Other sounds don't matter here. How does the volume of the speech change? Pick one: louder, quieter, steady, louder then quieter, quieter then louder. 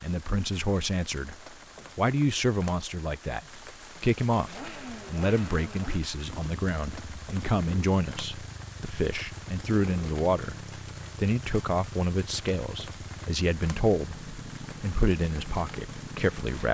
steady.